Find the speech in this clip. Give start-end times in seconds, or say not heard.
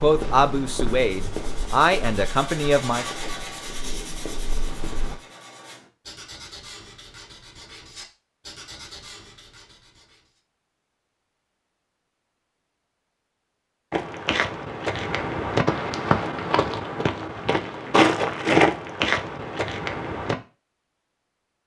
0.0-3.0.